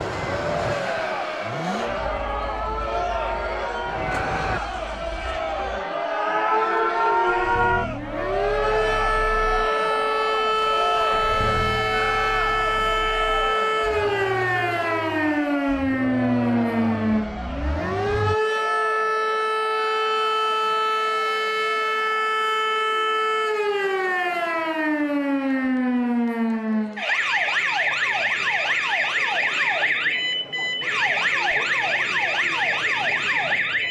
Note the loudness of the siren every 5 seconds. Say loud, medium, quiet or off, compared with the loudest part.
medium, loud, loud, loud, loud, loud, loud.